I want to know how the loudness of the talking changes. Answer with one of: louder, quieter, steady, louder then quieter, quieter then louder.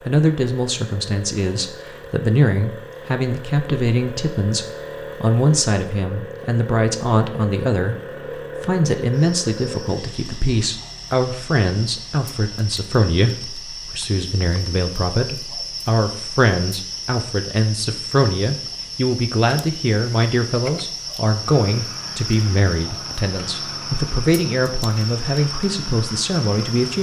steady.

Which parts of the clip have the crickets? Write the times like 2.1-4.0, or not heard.
9.1-26.9.